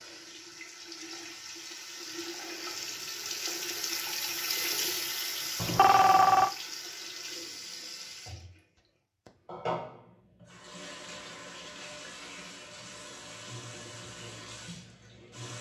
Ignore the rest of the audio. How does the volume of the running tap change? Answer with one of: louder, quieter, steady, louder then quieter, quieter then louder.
louder then quieter.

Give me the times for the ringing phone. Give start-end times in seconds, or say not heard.
5.6-6.5.